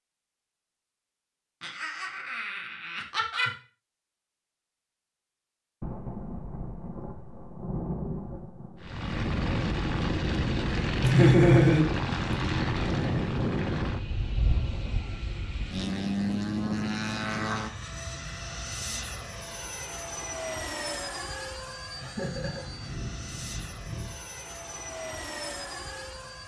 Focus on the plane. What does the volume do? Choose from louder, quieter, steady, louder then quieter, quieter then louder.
quieter.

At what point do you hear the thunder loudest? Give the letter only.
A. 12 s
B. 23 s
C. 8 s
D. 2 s
C.